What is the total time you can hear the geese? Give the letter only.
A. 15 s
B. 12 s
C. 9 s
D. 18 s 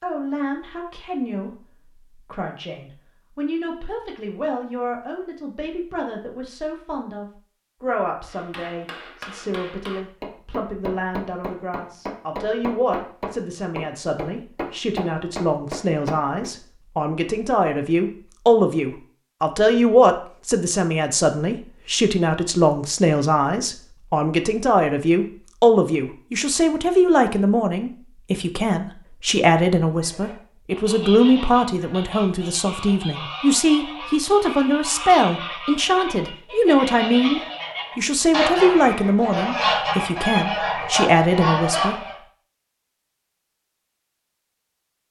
B.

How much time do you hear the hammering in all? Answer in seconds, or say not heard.
8 s.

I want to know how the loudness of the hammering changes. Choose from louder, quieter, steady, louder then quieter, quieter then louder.
louder.